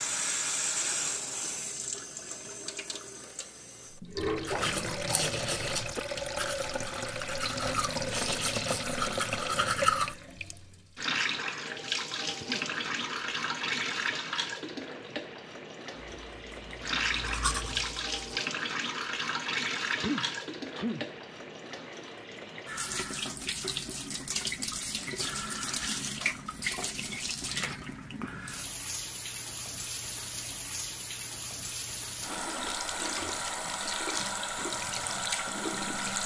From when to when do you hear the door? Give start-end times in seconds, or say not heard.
not heard.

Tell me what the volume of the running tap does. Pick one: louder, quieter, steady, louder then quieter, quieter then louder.
steady.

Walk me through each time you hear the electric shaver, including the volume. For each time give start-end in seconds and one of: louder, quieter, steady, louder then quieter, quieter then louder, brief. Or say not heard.
not heard.